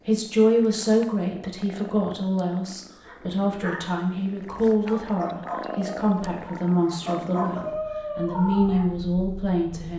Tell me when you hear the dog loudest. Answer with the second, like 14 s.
8 s.